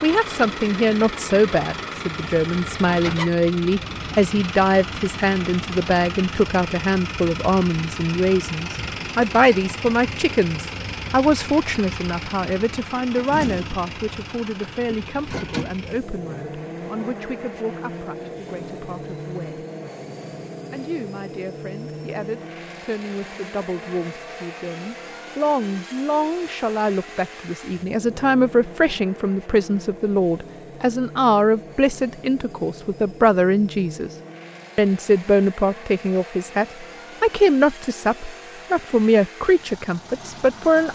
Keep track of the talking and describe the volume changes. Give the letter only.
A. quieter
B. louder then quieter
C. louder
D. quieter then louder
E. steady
D.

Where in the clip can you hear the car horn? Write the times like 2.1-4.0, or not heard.
not heard.